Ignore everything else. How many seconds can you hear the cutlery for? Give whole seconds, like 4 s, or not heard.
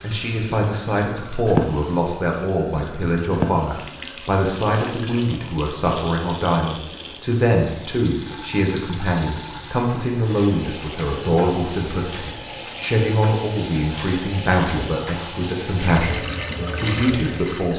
not heard.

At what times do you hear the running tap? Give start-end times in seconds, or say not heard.
0.0-17.7.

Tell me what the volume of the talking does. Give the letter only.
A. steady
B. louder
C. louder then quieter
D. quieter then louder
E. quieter
A.